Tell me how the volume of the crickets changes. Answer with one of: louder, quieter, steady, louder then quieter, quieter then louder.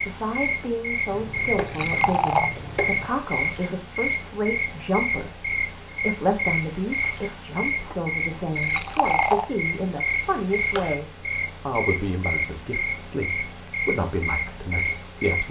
steady.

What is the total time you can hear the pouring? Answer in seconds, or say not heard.
2 s.